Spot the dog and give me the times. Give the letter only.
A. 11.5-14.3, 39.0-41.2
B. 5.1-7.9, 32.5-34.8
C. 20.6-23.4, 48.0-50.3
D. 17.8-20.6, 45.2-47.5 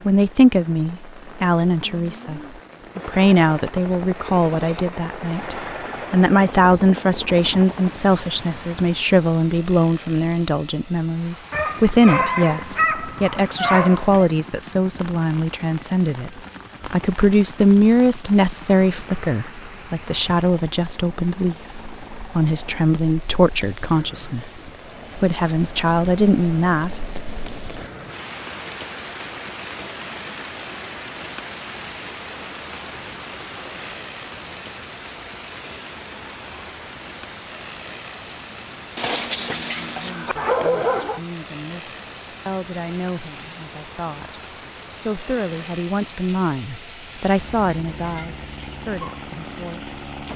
A.